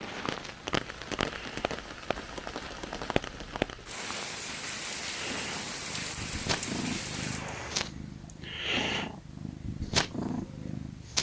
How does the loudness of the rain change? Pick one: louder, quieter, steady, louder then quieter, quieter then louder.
steady.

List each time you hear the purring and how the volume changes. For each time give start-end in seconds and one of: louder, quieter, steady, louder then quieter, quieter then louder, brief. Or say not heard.
0.0-11.1 louder.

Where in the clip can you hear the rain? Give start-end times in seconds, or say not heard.
0.0-7.8.